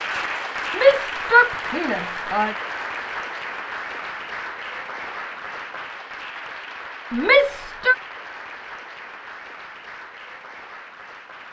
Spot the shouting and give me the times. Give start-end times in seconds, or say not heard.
0.8-2.5, 7.1-8.0.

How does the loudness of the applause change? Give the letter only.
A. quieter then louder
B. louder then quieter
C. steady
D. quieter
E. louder
D.